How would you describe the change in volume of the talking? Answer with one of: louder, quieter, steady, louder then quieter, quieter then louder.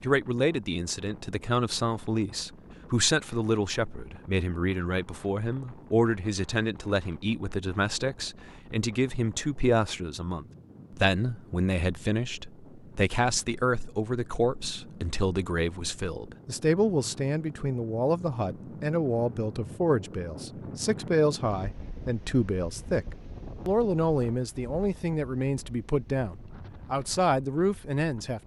steady.